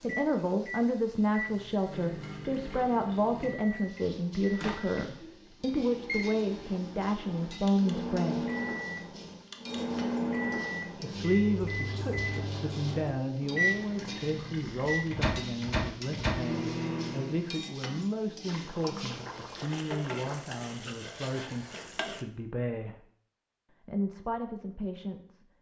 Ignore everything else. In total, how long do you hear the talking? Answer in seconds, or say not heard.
22 s.